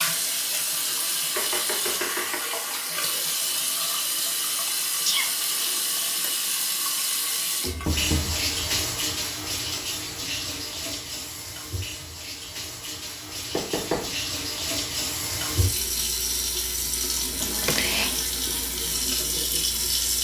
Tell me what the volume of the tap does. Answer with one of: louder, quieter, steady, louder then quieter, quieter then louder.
steady.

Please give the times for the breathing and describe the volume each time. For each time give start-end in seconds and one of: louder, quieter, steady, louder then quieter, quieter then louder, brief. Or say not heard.
not heard.